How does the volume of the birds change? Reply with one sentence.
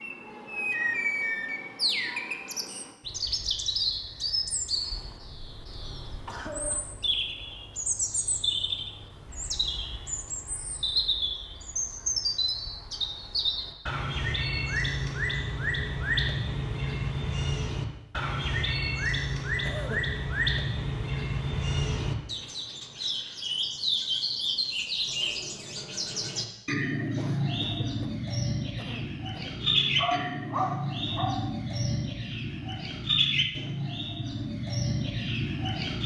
The volume of the birds stays about the same.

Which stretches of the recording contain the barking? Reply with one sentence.
You can hear the barking from 29.6 to 31.4 s.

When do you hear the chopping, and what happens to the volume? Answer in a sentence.
You can't hear the chopping here.